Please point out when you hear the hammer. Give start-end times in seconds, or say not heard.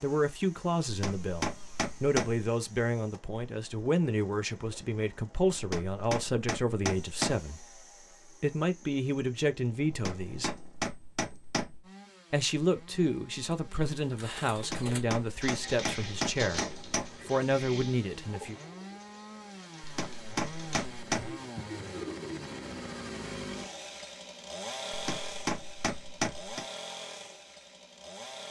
0.8-2.5, 5.5-7.5, 9.9-11.8, 14.6-17.2, 19.8-21.4, 24.9-26.6.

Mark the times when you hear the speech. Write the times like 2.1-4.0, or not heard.
0.0-10.6, 12.3-18.6.